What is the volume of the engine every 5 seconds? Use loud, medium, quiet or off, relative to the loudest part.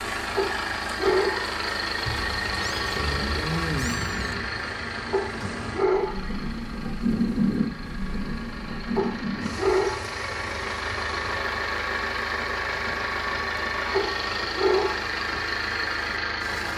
loud, medium, loud, loud.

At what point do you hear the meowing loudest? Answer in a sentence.
The loudest moment of the meowing is at 4 seconds.